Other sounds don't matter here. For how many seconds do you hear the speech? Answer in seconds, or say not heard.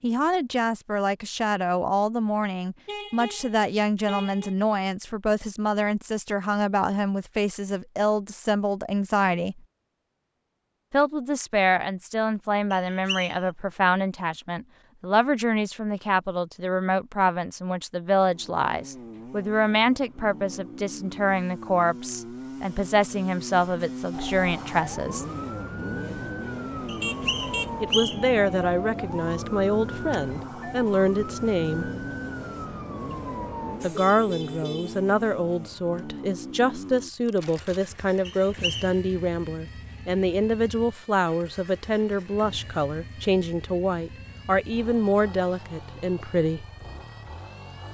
41 s.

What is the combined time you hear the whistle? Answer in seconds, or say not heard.
3 s.